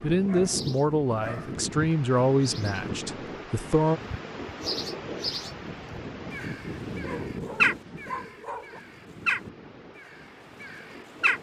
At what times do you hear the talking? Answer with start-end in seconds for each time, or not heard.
0.0-4.0.